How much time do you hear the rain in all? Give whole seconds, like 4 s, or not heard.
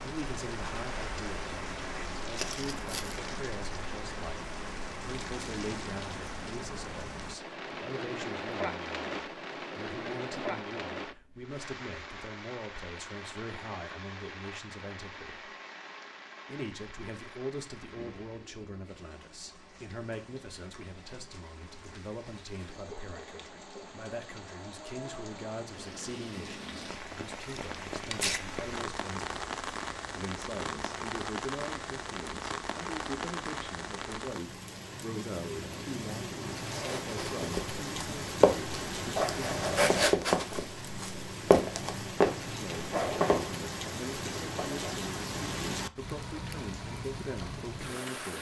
48 s.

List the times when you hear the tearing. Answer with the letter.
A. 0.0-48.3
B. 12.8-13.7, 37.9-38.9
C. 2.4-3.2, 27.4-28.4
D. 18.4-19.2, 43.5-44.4
C.